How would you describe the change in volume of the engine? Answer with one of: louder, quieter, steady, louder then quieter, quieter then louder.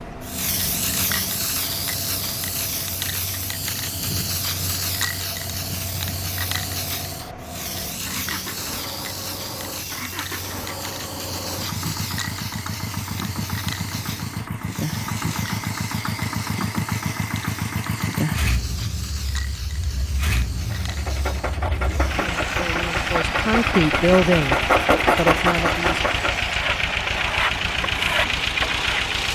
louder.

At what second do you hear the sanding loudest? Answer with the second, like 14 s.
25 s.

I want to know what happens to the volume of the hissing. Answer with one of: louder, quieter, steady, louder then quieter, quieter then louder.
quieter.